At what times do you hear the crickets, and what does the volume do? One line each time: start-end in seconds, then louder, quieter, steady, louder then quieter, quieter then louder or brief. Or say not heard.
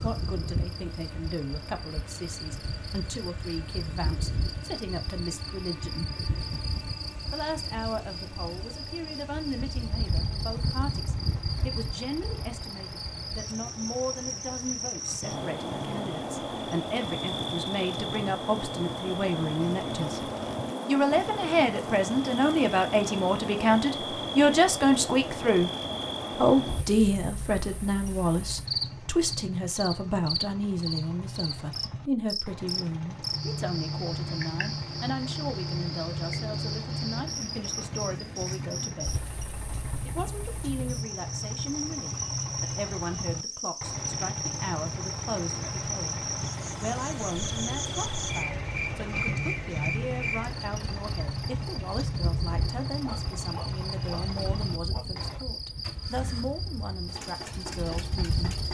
0.0-58.7 steady.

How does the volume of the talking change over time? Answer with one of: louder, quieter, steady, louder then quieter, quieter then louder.
louder then quieter.